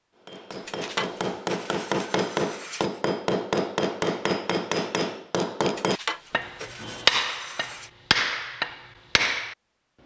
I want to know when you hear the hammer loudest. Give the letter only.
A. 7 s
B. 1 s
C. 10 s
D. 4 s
A.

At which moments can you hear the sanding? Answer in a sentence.
The sanding can be heard from 0.5 to 3.0 s and from 5.6 to 7.9 s.